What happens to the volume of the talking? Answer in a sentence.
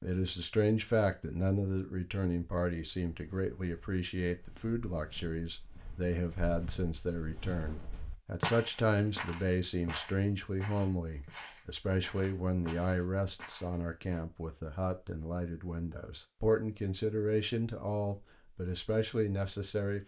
The volume of the talking stays about the same.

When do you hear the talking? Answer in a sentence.
You can hear the talking from 0.0 to 20.0 s.